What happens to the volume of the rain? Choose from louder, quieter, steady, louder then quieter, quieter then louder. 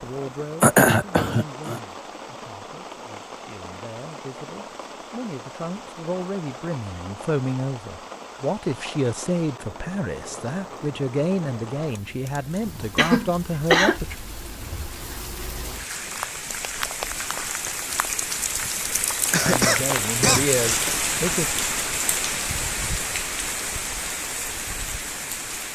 louder.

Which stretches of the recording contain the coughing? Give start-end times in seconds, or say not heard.
0.6-1.8, 12.9-14.0, 19.3-20.9.